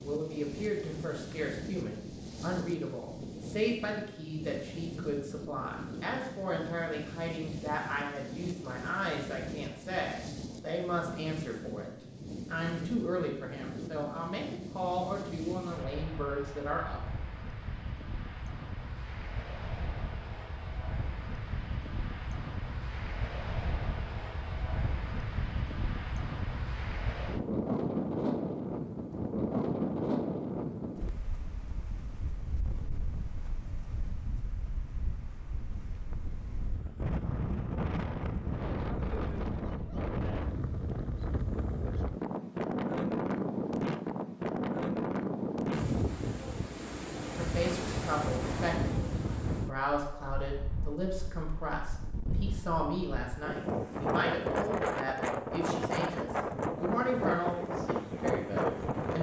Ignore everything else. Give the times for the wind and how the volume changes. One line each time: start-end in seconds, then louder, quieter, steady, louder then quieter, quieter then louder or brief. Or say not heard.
0.0-59.1 louder.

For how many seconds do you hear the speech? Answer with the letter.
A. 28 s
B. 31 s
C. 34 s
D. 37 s
A.